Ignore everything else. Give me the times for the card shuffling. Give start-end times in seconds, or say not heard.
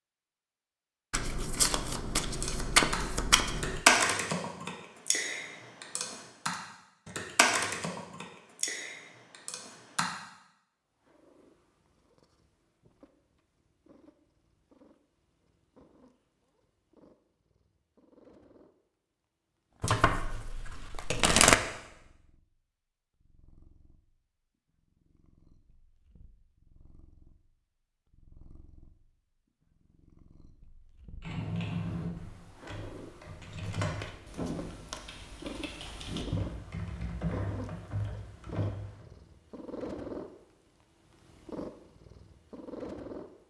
1.1-3.8, 19.8-21.6, 33.6-35.0.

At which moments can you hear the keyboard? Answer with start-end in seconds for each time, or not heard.
2.2-10.1, 31.2-39.0.